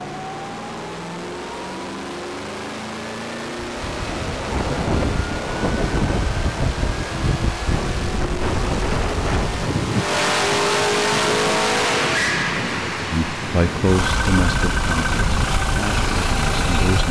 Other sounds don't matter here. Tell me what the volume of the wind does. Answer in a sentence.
The volume of the wind goes down.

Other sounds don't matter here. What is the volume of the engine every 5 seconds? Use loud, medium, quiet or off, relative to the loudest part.
medium, medium, loud, loud.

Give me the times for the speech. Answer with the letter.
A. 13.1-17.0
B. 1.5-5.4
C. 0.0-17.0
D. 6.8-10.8
A.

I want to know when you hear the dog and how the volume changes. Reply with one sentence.
You can't hear the dog here.